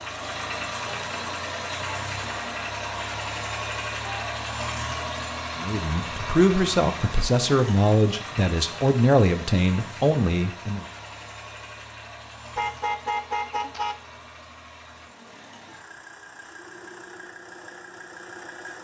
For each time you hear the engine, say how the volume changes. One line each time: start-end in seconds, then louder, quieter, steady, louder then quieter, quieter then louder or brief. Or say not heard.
0.0-18.7 quieter.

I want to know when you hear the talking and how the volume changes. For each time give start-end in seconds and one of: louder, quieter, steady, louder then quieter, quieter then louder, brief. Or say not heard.
5.5-10.8 steady.